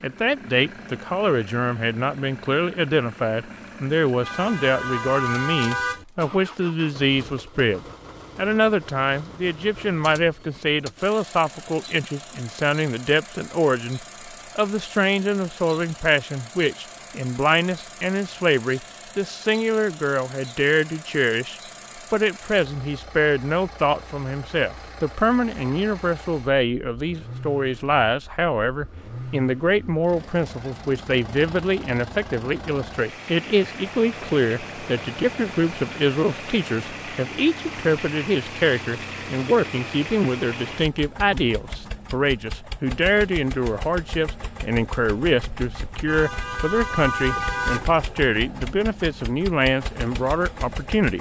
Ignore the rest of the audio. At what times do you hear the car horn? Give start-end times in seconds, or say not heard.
4.2-6.0, 46.0-47.9.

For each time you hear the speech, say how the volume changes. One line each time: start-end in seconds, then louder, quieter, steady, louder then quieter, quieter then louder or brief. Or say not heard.
0.0-51.1 steady.